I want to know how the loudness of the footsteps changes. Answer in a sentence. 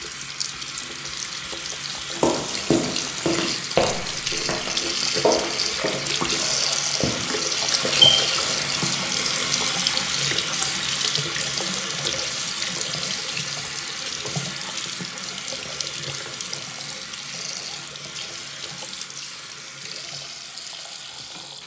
The volume of the footsteps goes down.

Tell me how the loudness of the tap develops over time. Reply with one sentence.
The loudness of the tap goes up, then down.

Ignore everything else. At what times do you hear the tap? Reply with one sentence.
The tap can be heard from 0.0 to 21.6 s.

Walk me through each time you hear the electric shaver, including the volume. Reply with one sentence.
The electric shaver can't be heard in this clip.